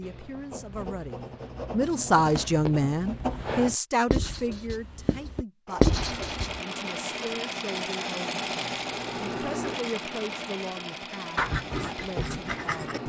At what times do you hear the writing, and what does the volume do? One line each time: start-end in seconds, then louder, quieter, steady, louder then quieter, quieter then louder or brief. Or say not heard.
0.0-6.6 louder
11.3-13.0 brief.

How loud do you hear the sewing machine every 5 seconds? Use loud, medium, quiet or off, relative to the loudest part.
off, loud, medium.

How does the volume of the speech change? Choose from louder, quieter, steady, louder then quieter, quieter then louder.
quieter.